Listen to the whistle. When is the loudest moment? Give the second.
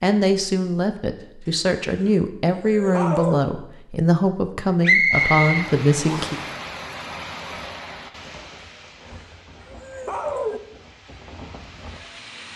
5 s.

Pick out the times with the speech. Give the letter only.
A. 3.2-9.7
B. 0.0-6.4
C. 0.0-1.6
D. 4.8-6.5
B.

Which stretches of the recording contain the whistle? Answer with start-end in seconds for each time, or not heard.
4.8-6.5.